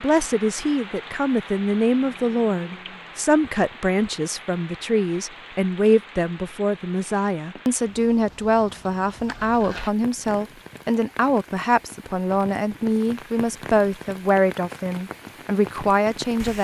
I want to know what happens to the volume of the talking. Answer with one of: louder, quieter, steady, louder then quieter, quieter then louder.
steady.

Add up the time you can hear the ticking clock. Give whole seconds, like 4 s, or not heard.
not heard.